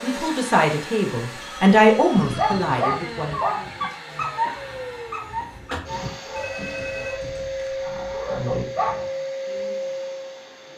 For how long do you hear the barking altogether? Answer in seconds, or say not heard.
7 s.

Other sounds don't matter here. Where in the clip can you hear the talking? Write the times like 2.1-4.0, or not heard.
0.0-3.5.